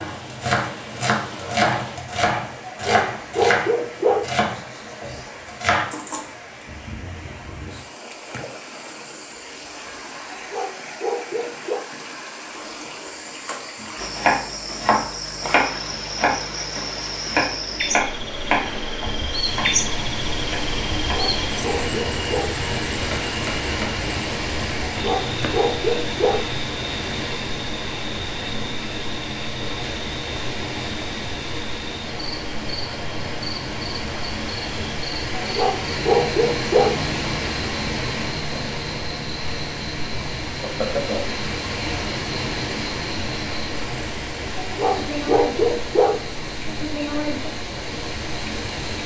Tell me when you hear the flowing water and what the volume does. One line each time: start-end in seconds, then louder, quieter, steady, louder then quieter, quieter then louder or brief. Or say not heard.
0.0-49.0 louder.